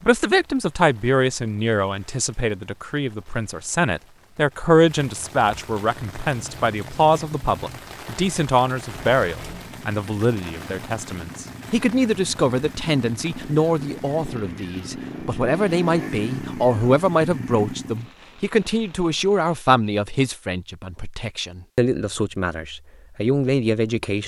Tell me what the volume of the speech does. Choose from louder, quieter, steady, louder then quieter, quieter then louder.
steady.